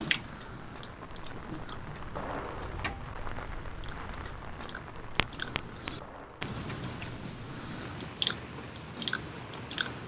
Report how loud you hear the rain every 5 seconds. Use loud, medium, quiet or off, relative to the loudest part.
loud, medium.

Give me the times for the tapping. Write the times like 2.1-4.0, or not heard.
5.2-6.5.